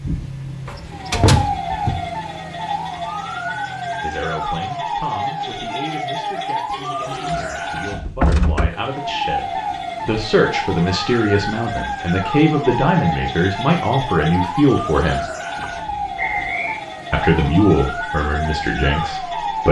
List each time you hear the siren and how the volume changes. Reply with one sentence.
The siren can be heard from 0.0 to 19.6 s, at a steady volume.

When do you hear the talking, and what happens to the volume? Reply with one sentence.
You can hear the talking from 4.0 to 15.2 s, getting louder; and briefly from 17.1 to 19.6 s.